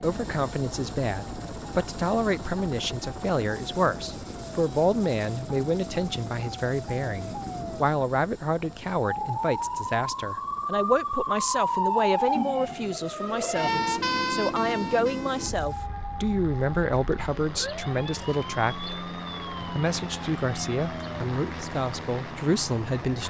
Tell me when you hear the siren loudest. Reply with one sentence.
The volume of the siren peaks at 12 seconds.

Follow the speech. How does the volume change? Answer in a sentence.
The loudness of the speech stays about the same.